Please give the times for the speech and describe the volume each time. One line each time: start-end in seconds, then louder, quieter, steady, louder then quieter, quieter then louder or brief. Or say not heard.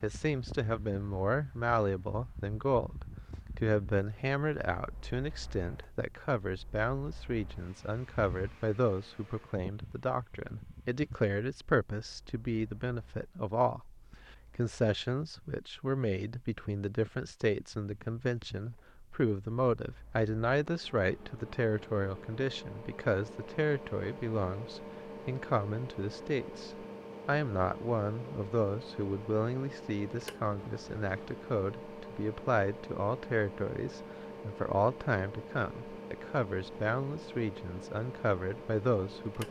0.0-39.4 steady.